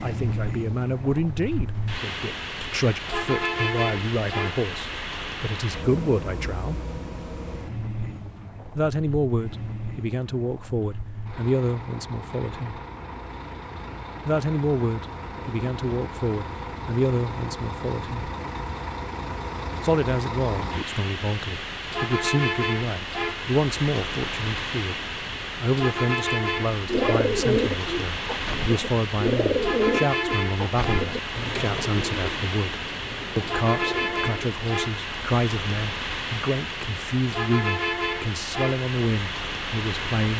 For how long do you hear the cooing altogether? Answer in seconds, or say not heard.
8 s.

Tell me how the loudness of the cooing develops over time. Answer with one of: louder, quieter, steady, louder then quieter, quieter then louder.
quieter.